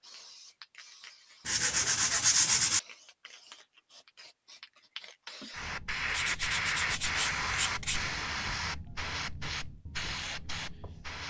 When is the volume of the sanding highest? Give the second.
2 s.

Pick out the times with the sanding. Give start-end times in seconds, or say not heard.
1.4-2.8, 6.1-8.0.